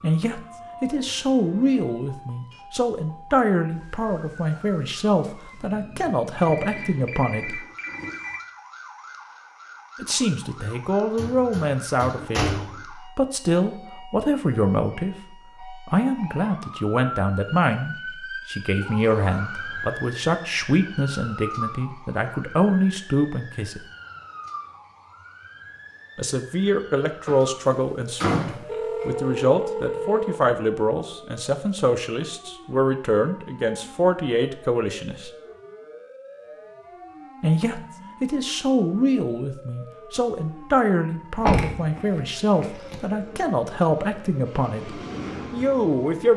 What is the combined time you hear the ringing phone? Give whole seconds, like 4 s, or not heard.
4 s.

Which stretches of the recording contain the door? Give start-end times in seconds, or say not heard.
11.2-12.8, 27.2-29.1, 41.4-43.0.